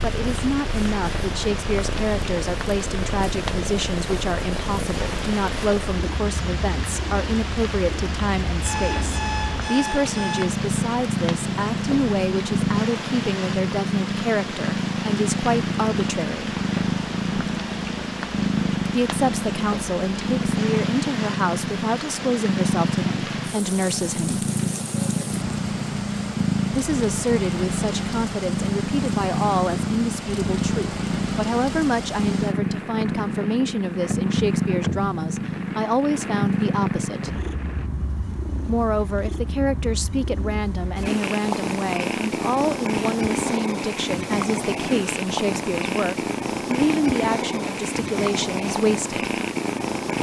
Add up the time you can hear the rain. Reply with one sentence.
The rain can be heard for 38 seconds in total.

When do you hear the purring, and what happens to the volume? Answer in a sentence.
The purring can be heard from 0.0 to 50.1 s, getting louder.